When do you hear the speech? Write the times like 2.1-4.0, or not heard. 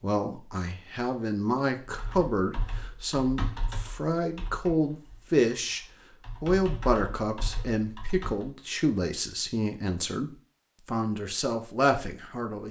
0.0-5.8, 6.4-12.6.